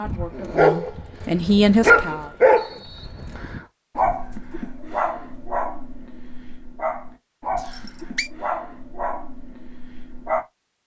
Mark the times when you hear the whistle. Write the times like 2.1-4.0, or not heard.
2.5-3.7, 7.5-8.3.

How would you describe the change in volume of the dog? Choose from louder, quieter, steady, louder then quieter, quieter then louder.
quieter.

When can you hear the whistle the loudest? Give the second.
8 s.